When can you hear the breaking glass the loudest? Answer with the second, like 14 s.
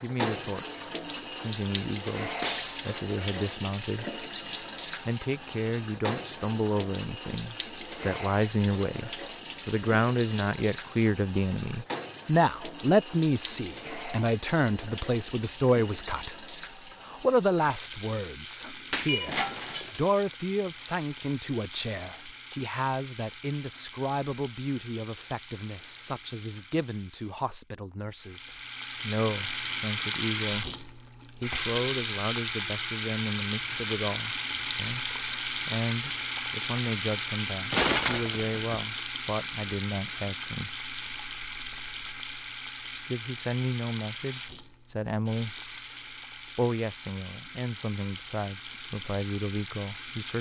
38 s.